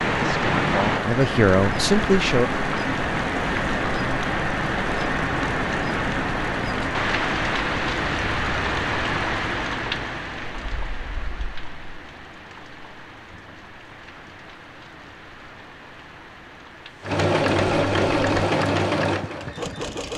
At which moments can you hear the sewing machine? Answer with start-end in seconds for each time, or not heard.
17.0-20.1.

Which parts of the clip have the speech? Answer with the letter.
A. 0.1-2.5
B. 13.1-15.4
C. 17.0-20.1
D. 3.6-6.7
A.